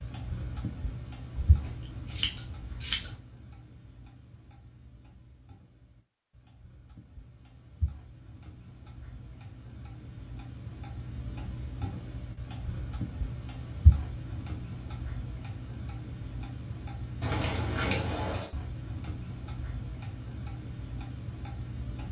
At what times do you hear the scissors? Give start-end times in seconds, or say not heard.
1.4-3.1, 17.2-18.5.